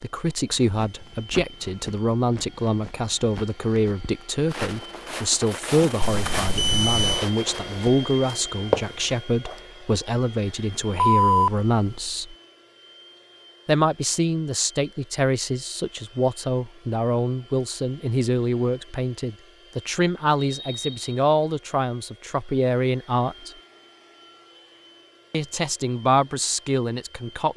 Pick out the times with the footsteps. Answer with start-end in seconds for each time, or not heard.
0.3-9.6.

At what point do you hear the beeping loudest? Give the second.
11 s.